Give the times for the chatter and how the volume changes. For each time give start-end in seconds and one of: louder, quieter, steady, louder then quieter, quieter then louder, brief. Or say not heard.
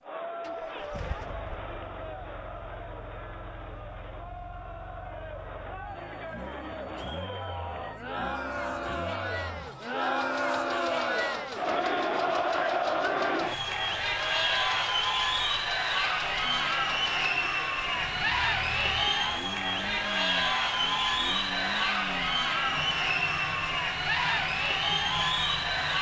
0.0-25.9 louder.